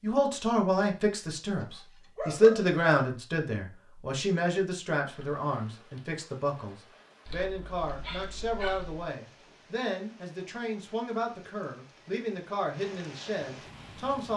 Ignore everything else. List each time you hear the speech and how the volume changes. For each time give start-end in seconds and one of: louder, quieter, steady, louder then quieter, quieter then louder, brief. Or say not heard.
0.0-14.3 quieter.